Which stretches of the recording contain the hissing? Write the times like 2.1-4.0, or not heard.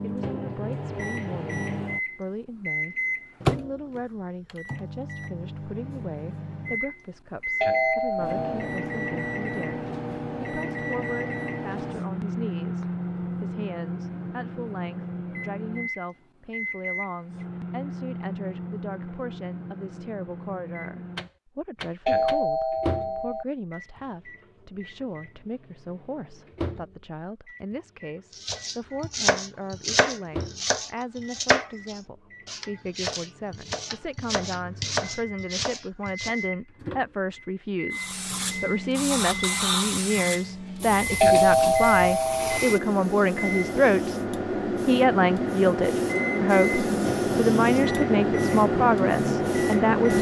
37.9-50.1.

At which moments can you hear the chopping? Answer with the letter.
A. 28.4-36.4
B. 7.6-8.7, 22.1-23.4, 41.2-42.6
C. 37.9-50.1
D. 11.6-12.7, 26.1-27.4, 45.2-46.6
A.